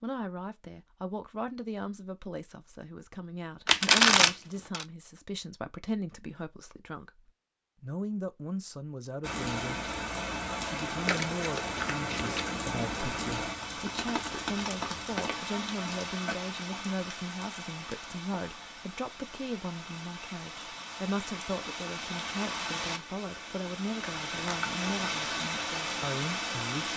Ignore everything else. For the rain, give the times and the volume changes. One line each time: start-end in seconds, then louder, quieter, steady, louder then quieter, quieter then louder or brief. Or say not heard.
9.2-26.9 quieter then louder.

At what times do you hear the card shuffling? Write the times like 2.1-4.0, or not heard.
3.6-4.8, 11.1-12.4, 24.0-24.6.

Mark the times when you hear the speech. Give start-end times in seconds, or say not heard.
0.0-9.8, 10.6-26.9.